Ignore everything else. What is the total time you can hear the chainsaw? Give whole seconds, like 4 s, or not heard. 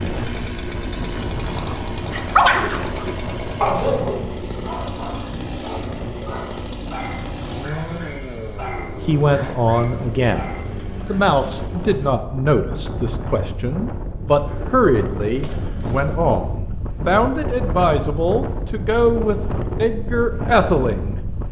14 s.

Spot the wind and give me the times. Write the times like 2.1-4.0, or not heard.
0.0-21.4.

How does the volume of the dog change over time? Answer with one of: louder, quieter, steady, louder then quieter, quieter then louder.
quieter.